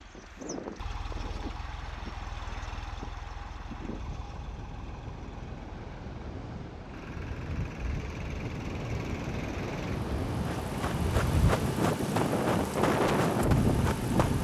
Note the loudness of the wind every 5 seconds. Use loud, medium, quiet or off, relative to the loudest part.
quiet, medium, loud.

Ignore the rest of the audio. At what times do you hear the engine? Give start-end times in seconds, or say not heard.
0.0-14.3.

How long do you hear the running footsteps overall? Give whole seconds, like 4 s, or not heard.
4 s.